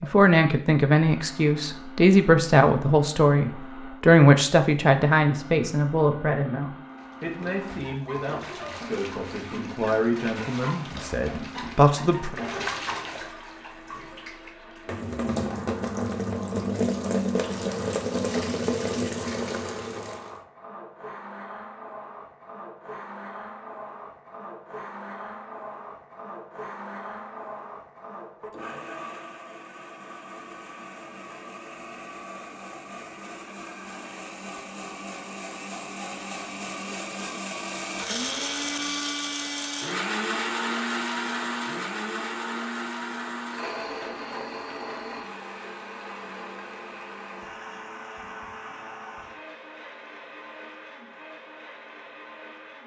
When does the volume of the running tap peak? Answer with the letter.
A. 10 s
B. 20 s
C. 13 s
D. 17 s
D.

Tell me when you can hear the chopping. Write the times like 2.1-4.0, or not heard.
not heard.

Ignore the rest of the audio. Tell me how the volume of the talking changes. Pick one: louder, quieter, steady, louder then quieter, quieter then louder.
quieter then louder.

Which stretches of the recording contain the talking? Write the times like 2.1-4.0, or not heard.
0.0-12.3.